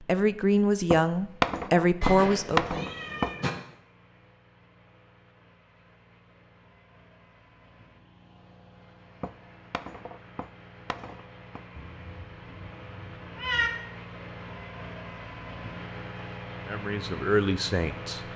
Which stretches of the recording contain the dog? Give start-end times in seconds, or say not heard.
not heard.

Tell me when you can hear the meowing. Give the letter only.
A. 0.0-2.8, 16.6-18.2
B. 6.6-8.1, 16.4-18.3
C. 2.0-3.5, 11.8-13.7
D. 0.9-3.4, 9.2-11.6
C.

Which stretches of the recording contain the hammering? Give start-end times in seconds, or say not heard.
0.9-3.4, 9.2-11.6.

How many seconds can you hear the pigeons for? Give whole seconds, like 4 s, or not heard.
not heard.